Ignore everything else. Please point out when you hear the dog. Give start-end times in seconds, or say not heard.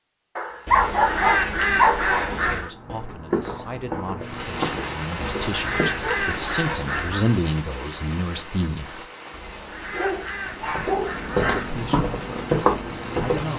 0.3-2.4, 6.0-7.0, 9.9-11.7.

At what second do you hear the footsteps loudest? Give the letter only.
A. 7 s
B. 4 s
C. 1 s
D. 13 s
D.